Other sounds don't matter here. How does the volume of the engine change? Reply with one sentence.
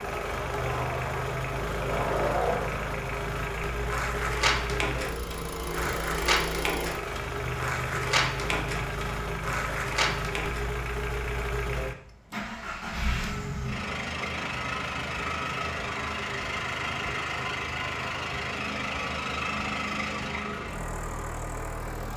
The volume of the engine stays about the same.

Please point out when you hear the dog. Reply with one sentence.
You can't hear the dog here.